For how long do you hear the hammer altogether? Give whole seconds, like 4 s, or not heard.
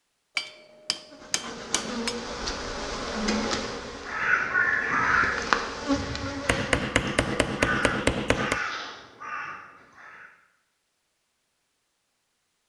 4 s.